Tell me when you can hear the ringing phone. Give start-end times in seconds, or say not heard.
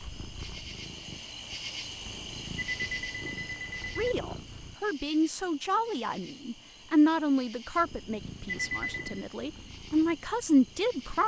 2.5-4.2, 8.4-9.2.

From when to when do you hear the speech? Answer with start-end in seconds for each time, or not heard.
4.0-11.2.